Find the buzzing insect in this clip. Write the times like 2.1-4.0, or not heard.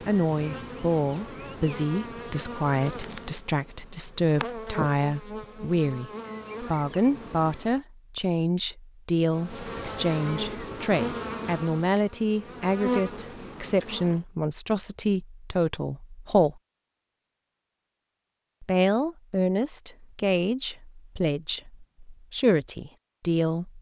0.0-7.8, 9.2-14.2.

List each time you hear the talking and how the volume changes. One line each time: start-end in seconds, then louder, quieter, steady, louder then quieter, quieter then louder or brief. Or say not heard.
0.1-16.6 steady
18.6-23.7 quieter then louder.